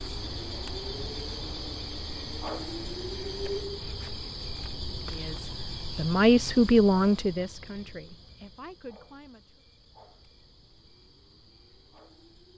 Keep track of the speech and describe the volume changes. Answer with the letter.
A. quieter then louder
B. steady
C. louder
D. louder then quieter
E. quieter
D.